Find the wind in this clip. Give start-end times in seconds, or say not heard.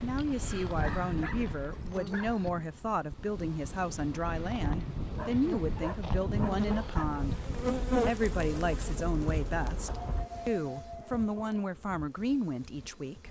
0.0-10.2.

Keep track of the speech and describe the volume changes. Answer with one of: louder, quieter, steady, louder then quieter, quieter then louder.
steady.